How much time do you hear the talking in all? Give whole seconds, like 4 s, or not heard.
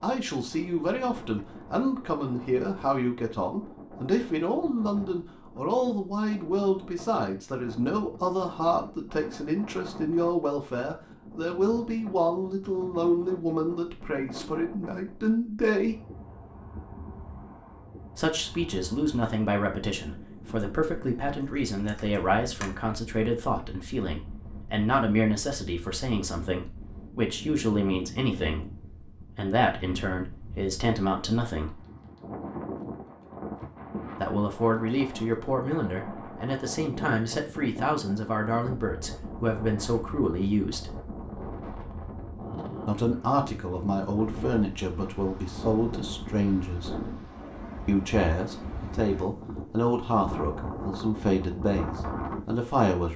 45 s.